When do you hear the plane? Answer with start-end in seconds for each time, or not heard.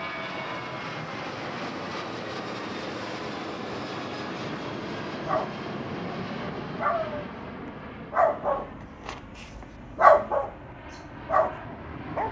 0.0-12.2.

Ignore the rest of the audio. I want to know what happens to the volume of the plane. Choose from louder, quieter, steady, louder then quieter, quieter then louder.
quieter.